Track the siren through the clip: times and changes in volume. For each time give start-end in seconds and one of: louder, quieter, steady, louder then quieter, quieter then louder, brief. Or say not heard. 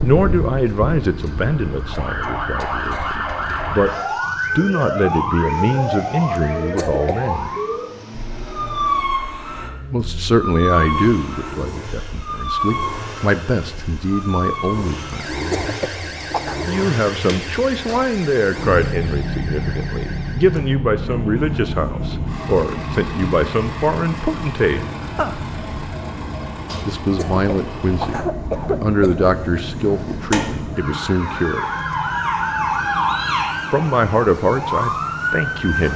0.0-35.9 quieter then louder.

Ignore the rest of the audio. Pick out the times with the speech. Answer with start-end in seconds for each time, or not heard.
0.0-3.9, 4.5-7.5, 9.9-15.4, 16.6-25.4, 26.9-31.6, 33.7-35.9.